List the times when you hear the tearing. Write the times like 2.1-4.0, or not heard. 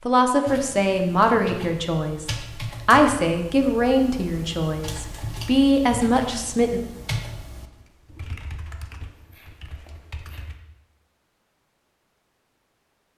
8.7-10.4.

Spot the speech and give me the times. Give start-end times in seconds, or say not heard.
0.1-6.8.